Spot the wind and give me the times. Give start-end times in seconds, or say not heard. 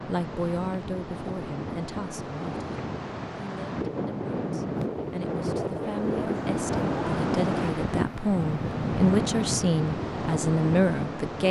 0.0-11.4.